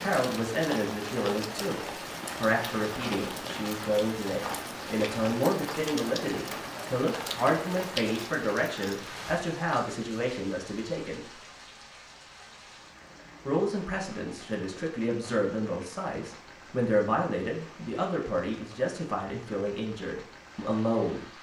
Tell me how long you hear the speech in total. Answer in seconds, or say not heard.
19 s.